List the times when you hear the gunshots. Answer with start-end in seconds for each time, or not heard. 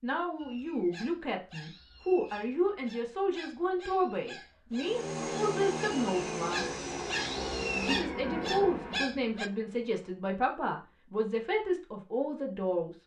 not heard.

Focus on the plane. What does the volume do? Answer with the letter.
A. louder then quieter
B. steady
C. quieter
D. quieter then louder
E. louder
C.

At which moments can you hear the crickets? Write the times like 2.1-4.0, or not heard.
not heard.